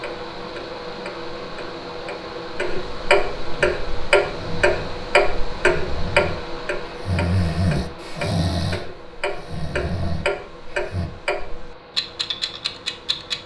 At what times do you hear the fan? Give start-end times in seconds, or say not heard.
0.0-13.4.